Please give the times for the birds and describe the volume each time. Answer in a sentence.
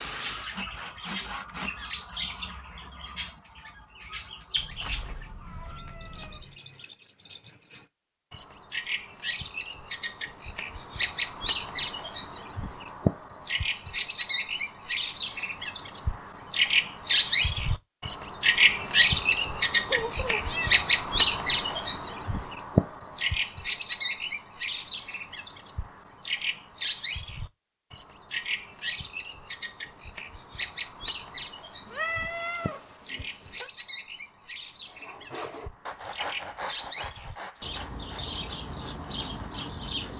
The birds can be heard from 0.0 to 40.1 s, getting louder then quieter.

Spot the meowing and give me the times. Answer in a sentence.
The meowing can be heard from 4.5 to 6.5 s, from 19.9 to 20.8 s and from 31.9 to 33.7 s.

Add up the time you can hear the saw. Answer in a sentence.
The saw can be heard for 7 seconds in total.